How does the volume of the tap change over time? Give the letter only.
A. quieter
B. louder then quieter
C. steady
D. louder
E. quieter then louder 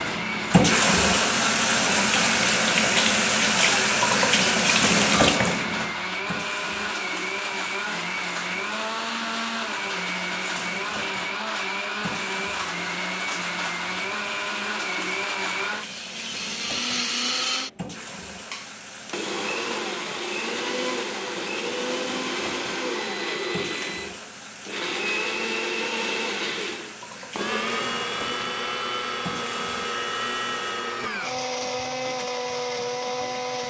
A.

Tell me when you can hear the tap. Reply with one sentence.
The tap can be heard from 0.0 to 30.9 s.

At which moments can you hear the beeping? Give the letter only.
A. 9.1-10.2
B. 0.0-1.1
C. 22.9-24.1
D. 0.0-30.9
C.